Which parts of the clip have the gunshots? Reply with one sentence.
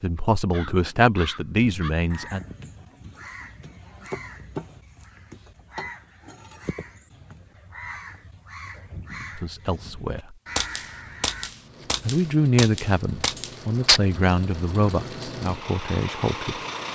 The gunshots can be heard from 10.6 to 14.0 s.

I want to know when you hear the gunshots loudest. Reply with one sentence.
The volume of the gunshots peaks at 14 seconds.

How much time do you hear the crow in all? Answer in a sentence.
The crow can be heard for 11 seconds in total.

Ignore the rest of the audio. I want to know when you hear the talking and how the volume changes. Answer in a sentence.
The talking can be heard briefly from 0.0 to 2.5 s; briefly from 9.3 to 10.3 s; and from 12.1 to 16.6 s, getting quieter.